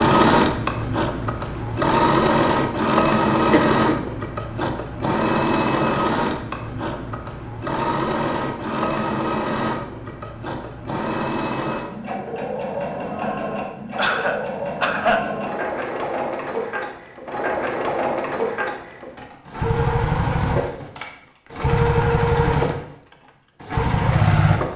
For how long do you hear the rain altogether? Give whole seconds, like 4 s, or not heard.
not heard.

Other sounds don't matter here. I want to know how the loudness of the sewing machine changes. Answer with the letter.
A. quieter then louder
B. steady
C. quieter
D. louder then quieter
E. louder
A.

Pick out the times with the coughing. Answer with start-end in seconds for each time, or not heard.
3.5-4.1, 13.2-15.2.